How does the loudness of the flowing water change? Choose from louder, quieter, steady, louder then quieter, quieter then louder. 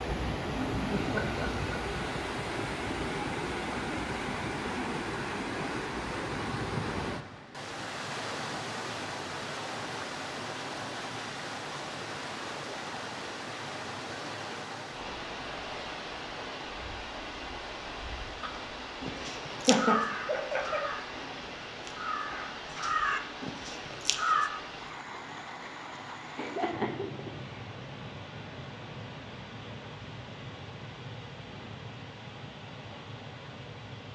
quieter.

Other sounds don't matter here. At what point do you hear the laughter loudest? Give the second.
20 s.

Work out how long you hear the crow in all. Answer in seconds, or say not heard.
6 s.